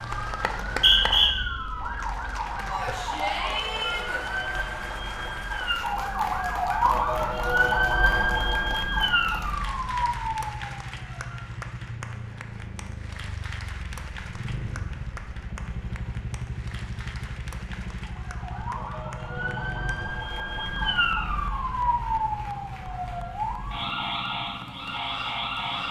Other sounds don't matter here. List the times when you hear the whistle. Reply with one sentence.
You can hear the whistle from 0.4 to 1.3 s.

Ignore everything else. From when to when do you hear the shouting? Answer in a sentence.
You can hear the shouting from 2.6 to 4.2 s.